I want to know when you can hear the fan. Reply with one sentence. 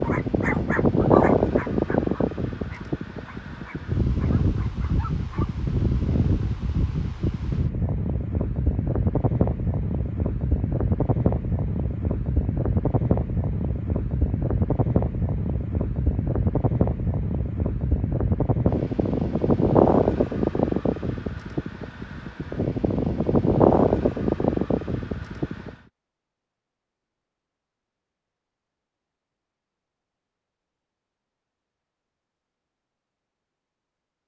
The fan can be heard from 0.0 to 25.8 s.